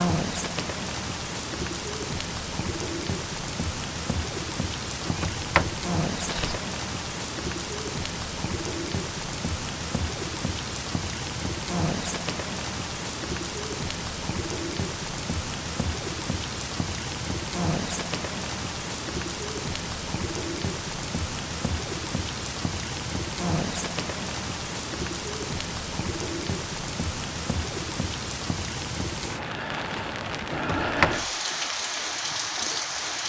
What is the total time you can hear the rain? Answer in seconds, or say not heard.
33 s.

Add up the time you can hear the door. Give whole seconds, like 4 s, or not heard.
2 s.